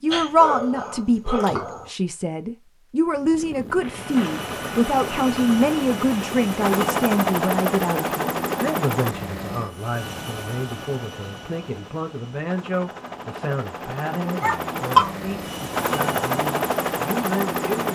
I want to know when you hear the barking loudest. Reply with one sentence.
The loudest moment of the barking is at 15 seconds.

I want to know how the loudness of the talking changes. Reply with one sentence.
The loudness of the talking goes down.